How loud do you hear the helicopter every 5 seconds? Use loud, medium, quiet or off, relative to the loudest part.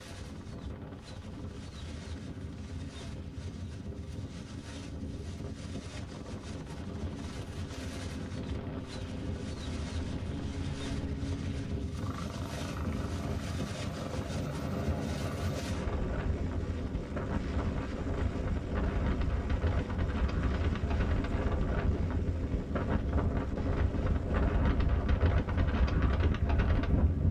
quiet, medium, loud, loud, loud, medium.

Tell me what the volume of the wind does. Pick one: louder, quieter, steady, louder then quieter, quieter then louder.
louder.